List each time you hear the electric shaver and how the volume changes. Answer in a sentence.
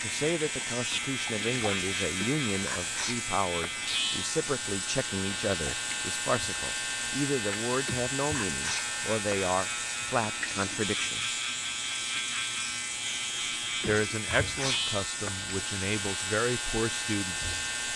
You can hear the electric shaver from 0.0 to 17.9 s, at a steady volume.